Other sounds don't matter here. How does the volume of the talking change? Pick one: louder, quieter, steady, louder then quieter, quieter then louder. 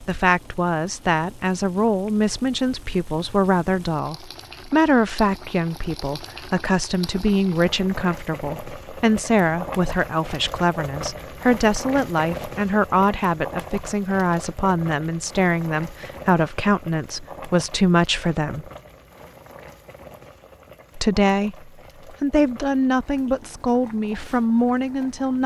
steady.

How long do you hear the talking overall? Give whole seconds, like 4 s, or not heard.
23 s.